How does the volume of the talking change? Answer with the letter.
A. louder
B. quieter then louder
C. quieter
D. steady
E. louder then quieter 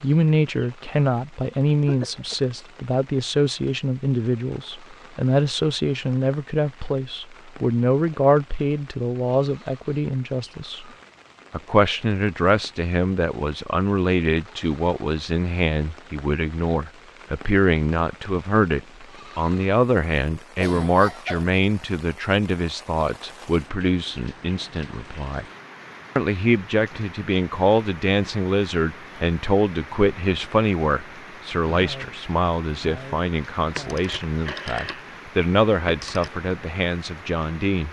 D.